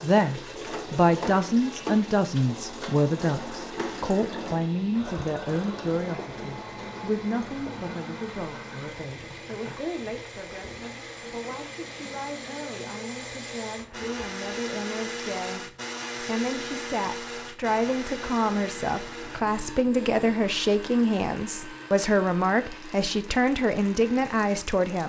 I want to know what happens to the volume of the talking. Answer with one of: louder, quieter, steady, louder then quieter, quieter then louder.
quieter then louder.